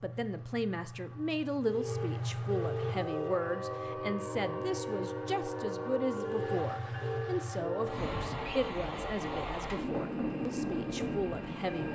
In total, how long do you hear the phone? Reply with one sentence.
The phone can be heard for 3 seconds in total.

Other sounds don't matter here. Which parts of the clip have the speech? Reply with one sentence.
You can hear the speech from 0.0 to 11.8 s.